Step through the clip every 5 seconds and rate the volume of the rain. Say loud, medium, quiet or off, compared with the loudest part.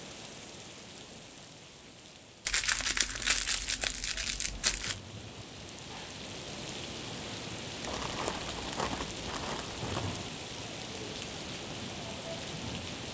medium, loud, loud.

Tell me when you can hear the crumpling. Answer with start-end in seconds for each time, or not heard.
2.5-5.0, 7.8-10.2.